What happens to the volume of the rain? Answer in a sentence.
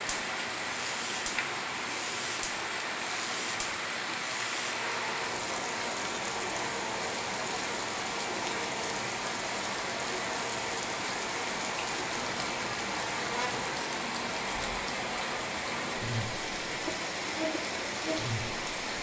The loudness of the rain stays about the same.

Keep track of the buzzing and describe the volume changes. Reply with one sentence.
The loudness of the buzzing stays about the same.